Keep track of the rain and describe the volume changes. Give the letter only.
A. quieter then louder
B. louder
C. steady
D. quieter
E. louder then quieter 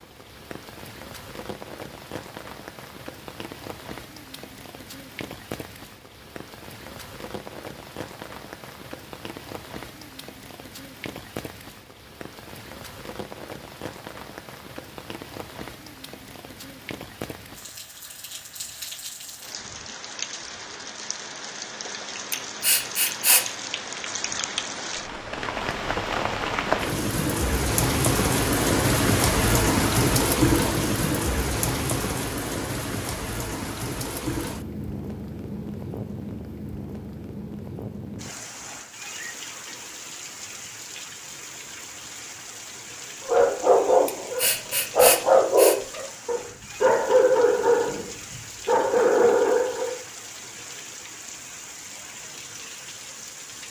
E.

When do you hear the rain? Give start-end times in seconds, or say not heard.
0.0-53.6.